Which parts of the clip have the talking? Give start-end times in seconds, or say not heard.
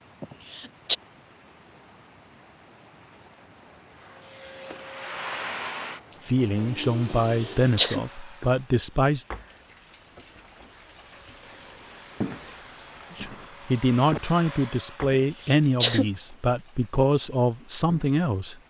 6.2-9.2, 13.1-18.6.